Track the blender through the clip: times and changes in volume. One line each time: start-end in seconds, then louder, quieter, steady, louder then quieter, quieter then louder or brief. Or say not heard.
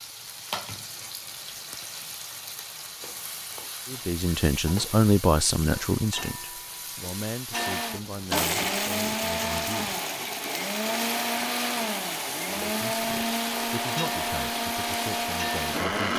7.5-16.1 steady.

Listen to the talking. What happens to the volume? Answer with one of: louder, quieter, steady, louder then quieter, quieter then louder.
quieter.